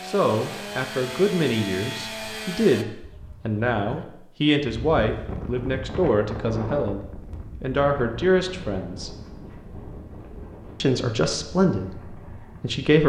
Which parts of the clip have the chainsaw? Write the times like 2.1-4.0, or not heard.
0.0-2.9.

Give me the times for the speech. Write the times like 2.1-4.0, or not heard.
0.1-9.1, 10.8-13.0.